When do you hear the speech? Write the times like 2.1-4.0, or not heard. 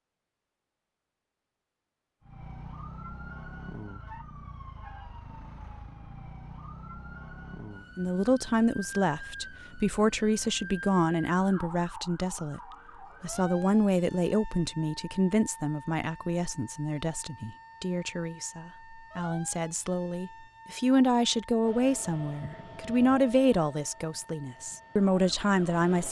8.0-12.6, 13.2-26.0.